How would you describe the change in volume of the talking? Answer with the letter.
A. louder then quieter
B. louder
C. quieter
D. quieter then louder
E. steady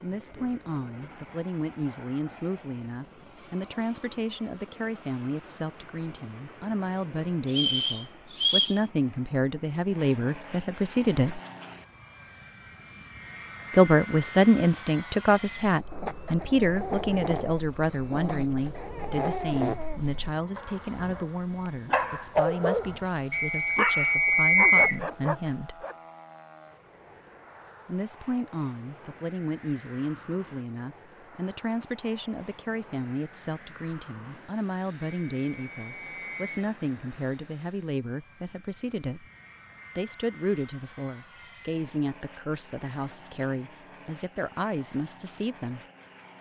A.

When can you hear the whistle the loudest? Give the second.
25 s.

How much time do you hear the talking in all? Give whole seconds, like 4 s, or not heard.
41 s.